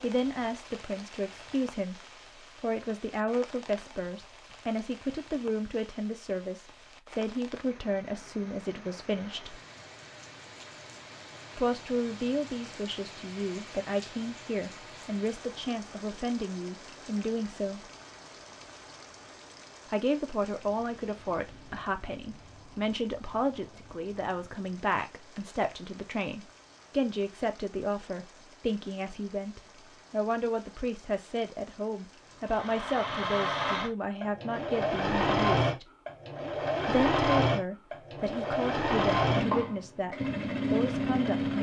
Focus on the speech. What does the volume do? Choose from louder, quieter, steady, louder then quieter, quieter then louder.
steady.